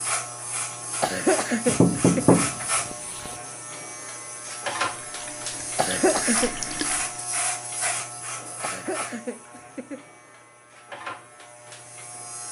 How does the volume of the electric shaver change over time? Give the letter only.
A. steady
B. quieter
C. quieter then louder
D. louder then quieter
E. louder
B.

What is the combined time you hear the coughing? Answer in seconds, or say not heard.
4 s.